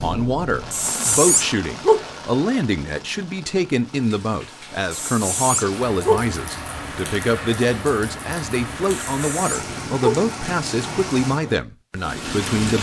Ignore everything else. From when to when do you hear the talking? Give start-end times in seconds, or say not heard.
0.0-12.7.